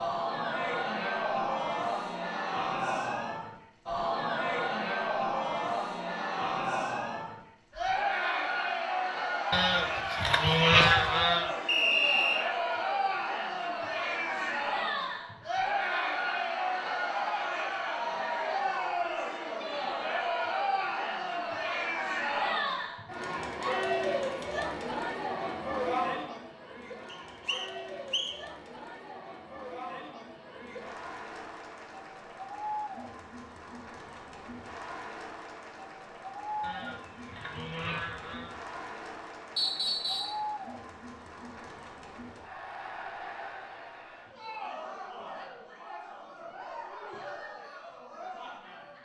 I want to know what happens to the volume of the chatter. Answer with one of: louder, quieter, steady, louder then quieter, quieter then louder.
quieter.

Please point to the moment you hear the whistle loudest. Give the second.
12 s.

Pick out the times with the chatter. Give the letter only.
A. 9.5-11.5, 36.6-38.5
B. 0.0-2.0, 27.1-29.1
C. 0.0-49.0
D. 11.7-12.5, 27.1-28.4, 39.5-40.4
C.